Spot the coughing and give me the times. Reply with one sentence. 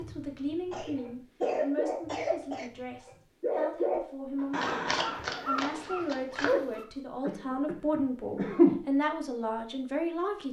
You can hear the coughing from 0.7 to 2.7 s and from 7.2 to 8.8 s.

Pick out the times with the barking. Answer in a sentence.
The barking can be heard from 0.0 to 2.2 s and from 3.0 to 6.8 s.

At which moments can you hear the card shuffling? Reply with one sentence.
You can hear the card shuffling from 4.5 to 6.5 s.